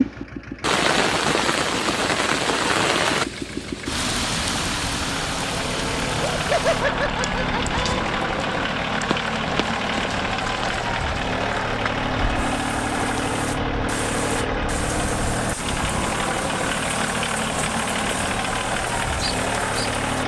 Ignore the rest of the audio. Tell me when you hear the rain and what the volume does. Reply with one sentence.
The rain can be heard from 0.0 to 20.2 s, getting quieter.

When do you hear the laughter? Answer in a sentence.
The laughter can be heard from 6.2 to 8.0 s.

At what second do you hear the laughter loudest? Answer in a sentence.
The volume of the laughter peaks at 7 seconds.